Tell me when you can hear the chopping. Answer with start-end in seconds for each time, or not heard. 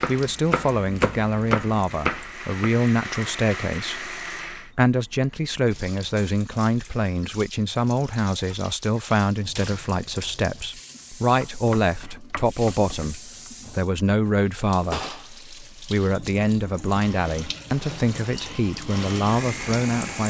0.0-2.8, 11.4-13.5.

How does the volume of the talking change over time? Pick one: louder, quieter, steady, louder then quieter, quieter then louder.
steady.